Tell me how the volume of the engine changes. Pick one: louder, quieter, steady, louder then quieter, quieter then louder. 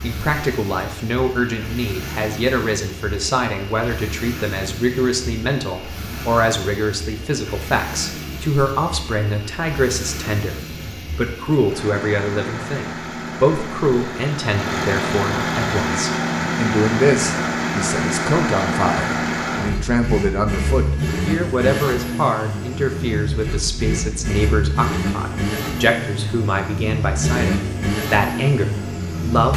louder.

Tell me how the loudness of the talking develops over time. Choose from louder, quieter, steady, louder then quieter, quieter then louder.
steady.